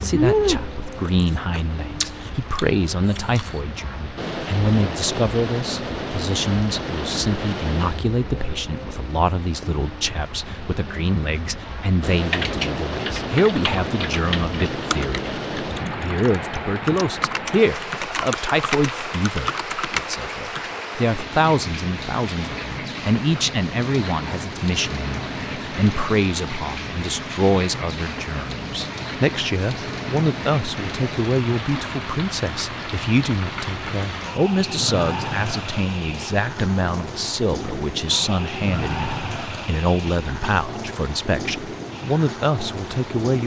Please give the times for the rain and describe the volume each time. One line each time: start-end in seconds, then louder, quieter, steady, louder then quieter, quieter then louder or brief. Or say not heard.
0.0-43.4 steady.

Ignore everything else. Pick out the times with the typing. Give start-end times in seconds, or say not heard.
12.2-20.7.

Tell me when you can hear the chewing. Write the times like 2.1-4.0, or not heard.
0.0-3.6.